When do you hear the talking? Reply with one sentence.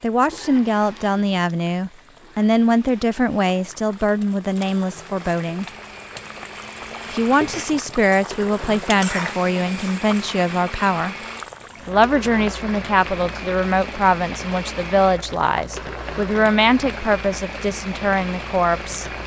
You can hear the talking from 0.0 to 5.7 s, from 7.0 to 11.2 s and from 11.8 to 19.1 s.